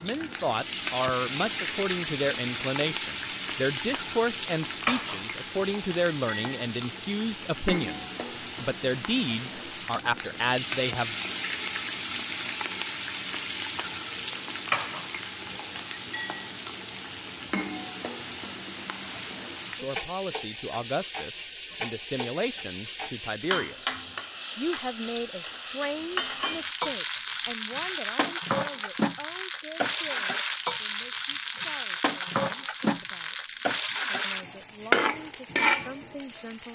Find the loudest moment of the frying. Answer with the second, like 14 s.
35 s.